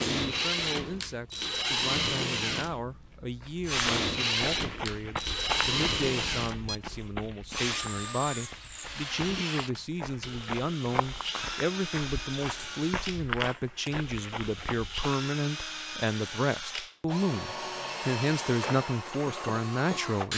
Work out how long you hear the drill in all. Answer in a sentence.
You can hear the drill for 20 seconds altogether.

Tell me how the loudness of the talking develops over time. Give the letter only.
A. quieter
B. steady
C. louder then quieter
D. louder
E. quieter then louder
D.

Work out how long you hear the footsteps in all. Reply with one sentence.
The footsteps can be heard for 12 seconds in total.